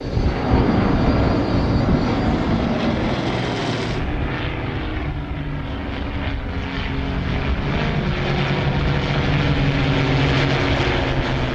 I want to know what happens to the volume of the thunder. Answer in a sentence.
The loudness of the thunder goes down.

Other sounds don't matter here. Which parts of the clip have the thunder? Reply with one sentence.
The thunder can be heard from 0.1 to 4.3 s.